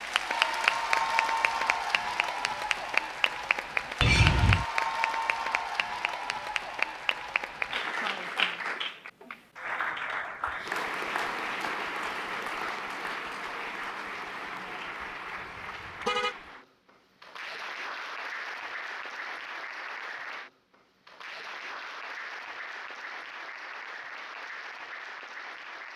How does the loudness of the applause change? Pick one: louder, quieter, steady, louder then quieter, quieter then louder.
quieter.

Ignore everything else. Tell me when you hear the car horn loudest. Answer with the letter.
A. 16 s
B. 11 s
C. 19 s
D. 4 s
D.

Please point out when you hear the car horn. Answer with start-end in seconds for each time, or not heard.
4.0-4.7, 15.4-16.4.